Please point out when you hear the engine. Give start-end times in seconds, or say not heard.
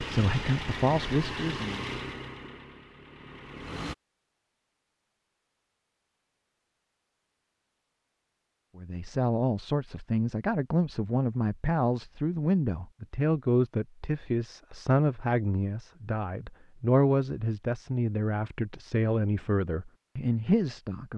0.0-4.0.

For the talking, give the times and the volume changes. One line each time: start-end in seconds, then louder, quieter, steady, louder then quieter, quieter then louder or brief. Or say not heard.
0.0-1.8 brief
8.8-21.1 steady.